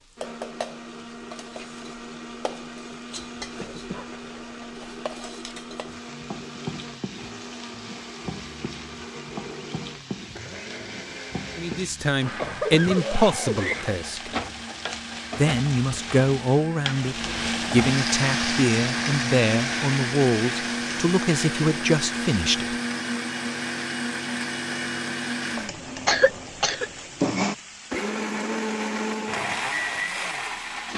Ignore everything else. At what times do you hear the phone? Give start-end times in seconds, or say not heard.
not heard.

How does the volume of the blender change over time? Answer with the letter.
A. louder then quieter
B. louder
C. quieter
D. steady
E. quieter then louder
B.